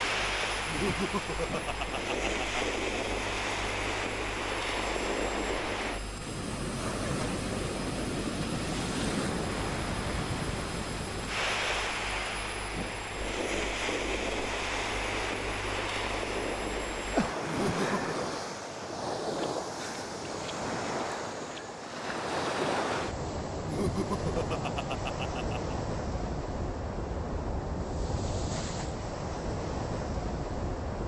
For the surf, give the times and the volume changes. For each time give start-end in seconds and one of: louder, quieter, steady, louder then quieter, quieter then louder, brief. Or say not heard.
0.0-31.0 steady.